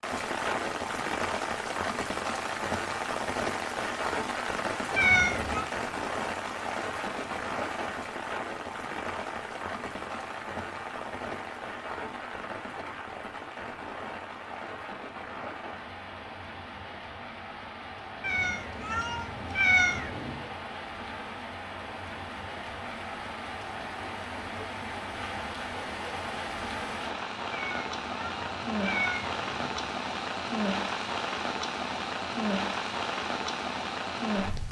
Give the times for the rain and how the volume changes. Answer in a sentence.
The rain can be heard from 0.0 to 34.6 s, getting quieter then louder.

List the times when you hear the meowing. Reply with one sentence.
You can hear the meowing from 5.0 to 5.7 s, from 18.2 to 20.5 s and from 27.5 to 29.9 s.